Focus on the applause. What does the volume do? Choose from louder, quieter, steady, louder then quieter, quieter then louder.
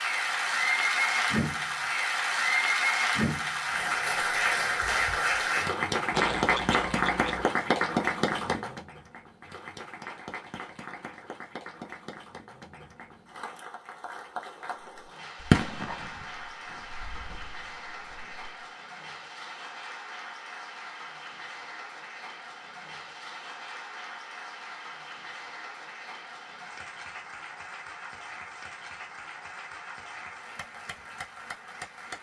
quieter.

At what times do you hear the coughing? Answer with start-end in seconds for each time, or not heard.
6.1-7.5.